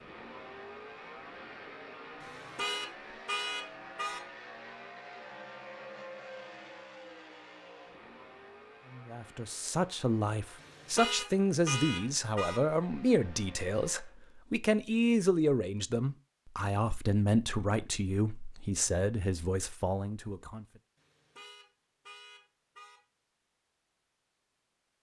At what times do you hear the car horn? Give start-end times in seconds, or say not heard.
2.2-4.2, 10.6-12.6, 20.9-23.0.